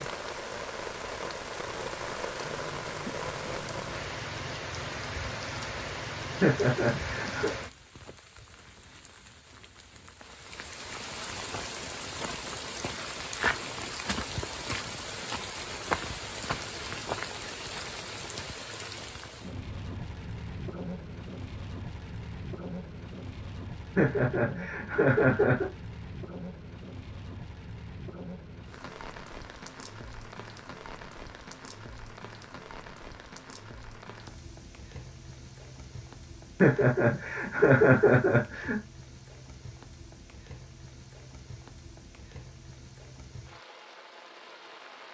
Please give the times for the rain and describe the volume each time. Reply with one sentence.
You can hear the rain from 0.0 to 45.1 s, getting quieter.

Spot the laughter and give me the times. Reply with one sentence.
You can hear the laughter from 6.4 to 7.5 s, from 23.9 to 25.6 s and from 36.6 to 38.8 s.